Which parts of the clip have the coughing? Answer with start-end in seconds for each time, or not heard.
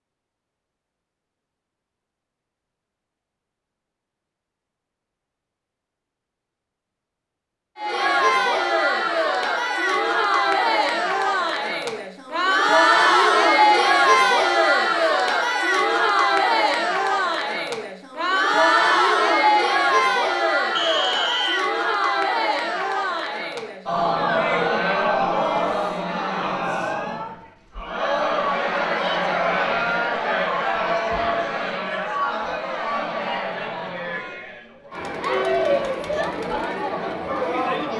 not heard.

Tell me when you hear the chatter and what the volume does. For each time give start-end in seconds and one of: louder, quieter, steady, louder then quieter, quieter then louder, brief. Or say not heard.
7.8-37.9 quieter.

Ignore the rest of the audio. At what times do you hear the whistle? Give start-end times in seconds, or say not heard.
20.8-21.6.